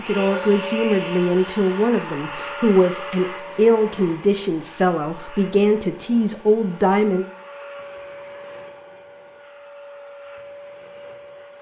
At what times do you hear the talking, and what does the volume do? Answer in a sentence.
The talking can be heard from 0.0 to 7.2 s, at a steady volume.